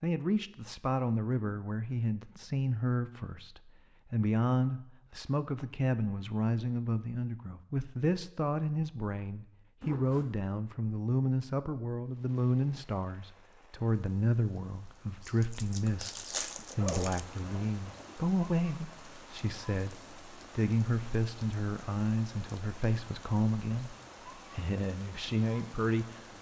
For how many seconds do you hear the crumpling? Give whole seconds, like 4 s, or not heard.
2 s.